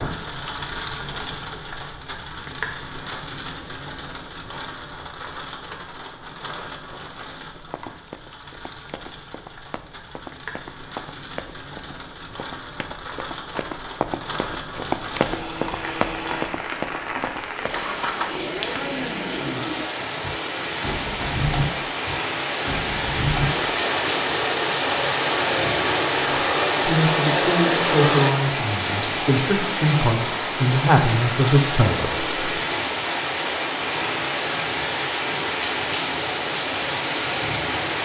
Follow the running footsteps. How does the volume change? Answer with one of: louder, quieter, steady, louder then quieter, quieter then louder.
louder.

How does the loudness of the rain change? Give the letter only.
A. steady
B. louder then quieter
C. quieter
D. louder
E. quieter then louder
D.